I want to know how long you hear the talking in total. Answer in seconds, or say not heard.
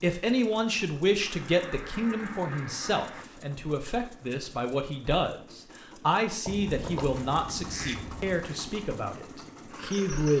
10 s.